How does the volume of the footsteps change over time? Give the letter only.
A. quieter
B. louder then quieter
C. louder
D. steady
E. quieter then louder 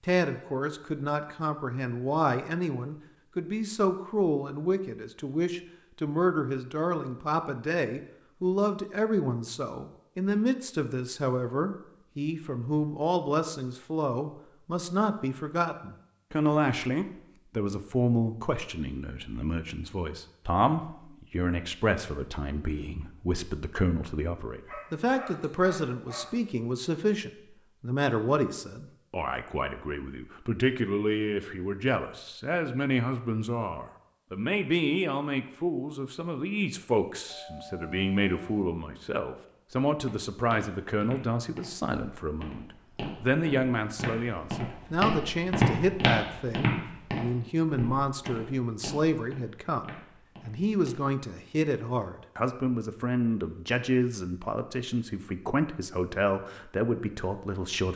B.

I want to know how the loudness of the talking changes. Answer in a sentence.
The loudness of the talking stays about the same.